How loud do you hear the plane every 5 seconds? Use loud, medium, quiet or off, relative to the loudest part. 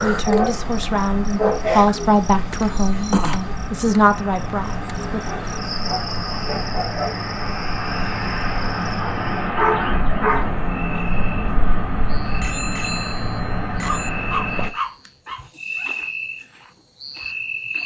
medium, loud, loud, off.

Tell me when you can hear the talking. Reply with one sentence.
You can hear the talking from 0.0 to 5.2 s.